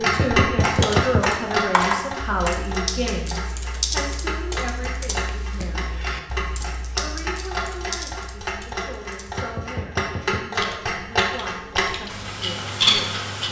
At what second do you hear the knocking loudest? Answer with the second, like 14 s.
1 s.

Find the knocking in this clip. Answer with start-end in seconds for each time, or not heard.
0.1-1.3, 9.2-10.5.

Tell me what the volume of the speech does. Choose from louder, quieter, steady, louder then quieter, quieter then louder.
quieter.